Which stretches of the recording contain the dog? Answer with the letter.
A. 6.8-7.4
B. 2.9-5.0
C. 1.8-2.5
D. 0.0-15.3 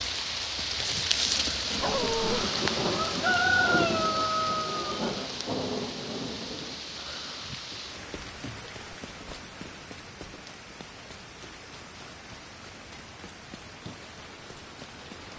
C.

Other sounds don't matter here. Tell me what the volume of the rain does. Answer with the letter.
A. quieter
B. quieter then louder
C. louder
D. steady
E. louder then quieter
A.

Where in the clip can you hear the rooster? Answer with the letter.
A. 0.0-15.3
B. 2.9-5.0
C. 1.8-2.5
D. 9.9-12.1
B.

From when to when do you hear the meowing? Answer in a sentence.
The meowing can't be heard in this clip.